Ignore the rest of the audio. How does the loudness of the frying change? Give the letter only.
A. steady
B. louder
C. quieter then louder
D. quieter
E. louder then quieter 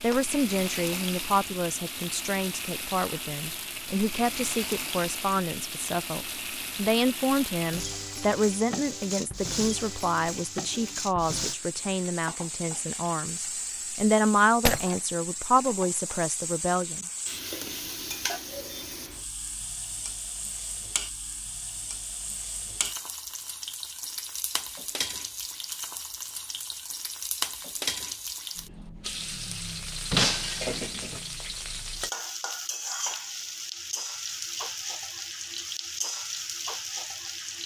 A.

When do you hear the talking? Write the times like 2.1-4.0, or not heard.
0.0-17.1.